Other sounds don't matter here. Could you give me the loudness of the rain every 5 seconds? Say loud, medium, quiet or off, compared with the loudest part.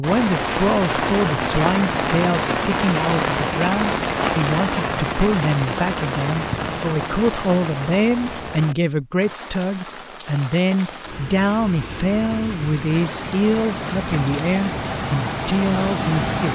loud, medium, medium, loud.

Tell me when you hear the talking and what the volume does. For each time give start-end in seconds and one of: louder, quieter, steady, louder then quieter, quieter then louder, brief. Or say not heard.
0.0-16.5 steady.